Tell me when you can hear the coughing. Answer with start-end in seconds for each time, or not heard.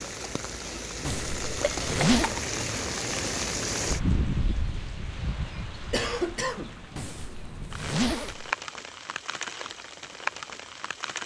1.8-2.4, 5.9-6.8.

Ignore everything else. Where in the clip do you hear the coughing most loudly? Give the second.
6 s.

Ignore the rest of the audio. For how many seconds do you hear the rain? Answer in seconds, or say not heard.
11 s.